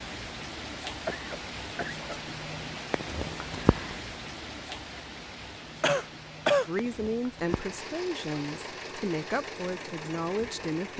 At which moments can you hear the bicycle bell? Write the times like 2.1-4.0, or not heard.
not heard.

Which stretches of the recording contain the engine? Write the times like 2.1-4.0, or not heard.
7.5-10.9.